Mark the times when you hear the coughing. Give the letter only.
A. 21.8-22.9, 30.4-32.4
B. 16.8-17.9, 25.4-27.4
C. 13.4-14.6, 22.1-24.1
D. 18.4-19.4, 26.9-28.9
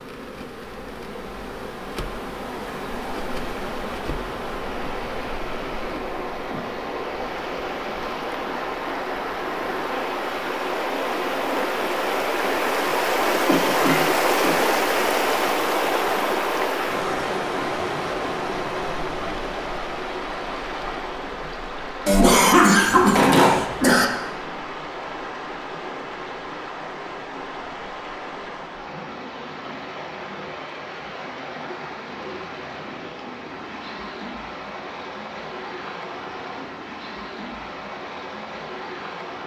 C.